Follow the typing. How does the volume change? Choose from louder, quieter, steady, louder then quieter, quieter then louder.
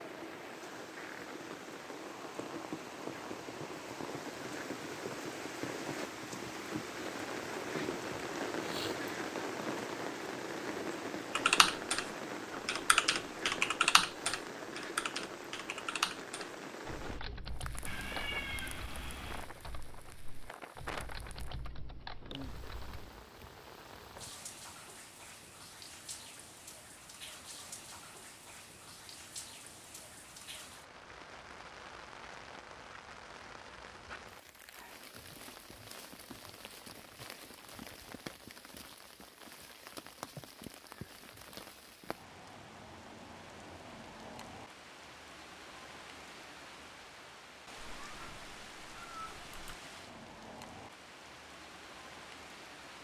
quieter then louder.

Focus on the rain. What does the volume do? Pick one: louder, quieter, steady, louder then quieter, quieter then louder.
quieter.